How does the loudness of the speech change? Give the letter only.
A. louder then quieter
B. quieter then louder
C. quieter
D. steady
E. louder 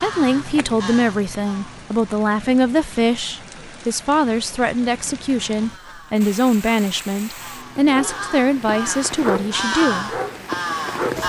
D.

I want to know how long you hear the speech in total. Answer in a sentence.
You can hear the speech for 10 seconds altogether.